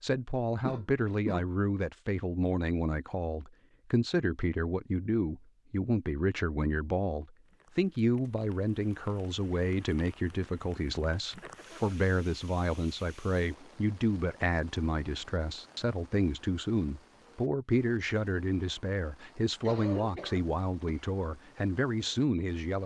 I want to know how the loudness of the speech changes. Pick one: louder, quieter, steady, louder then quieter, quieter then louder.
steady.